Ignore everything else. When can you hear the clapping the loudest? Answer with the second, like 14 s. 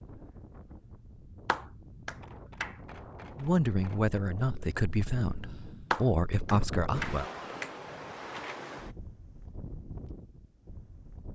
6 s.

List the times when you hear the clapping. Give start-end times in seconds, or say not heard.
1.4-2.8, 5.9-7.7.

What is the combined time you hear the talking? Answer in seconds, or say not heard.
4 s.